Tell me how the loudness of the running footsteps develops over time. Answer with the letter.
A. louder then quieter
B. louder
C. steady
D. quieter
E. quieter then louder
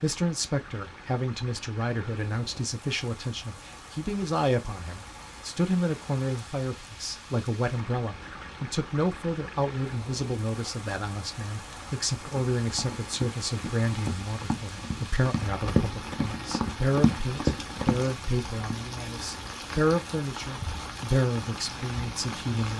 B.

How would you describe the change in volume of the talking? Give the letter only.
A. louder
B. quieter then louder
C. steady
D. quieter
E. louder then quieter
C.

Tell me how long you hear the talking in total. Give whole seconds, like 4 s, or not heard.
23 s.